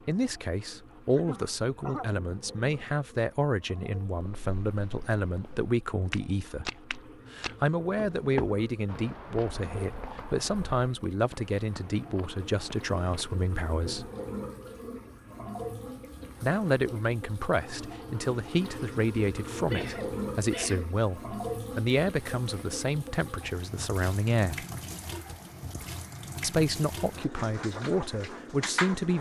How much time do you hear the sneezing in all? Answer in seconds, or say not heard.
2 s.